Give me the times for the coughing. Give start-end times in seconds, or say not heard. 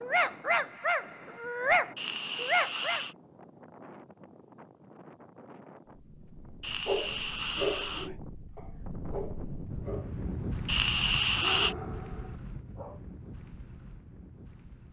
1.9-3.1, 6.6-8.2, 10.7-11.8.